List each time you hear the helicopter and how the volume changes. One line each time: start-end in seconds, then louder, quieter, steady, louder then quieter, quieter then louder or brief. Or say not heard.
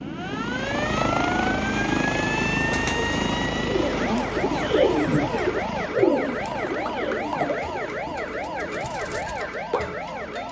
0.1-10.4 quieter.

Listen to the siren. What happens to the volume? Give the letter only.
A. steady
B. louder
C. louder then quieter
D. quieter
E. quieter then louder
A.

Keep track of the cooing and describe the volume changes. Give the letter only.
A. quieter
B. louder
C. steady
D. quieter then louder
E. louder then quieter
E.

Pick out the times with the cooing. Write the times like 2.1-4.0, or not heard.
2.6-9.4.